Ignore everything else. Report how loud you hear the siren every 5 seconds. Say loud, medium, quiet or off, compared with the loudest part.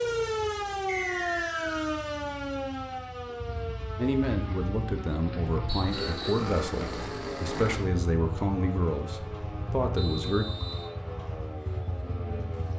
loud, medium, medium.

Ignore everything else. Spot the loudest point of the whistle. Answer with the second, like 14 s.
1 s.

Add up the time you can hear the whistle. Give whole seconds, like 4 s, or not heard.
3 s.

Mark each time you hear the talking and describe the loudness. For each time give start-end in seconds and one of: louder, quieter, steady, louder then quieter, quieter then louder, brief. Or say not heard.
4.0-10.4 steady.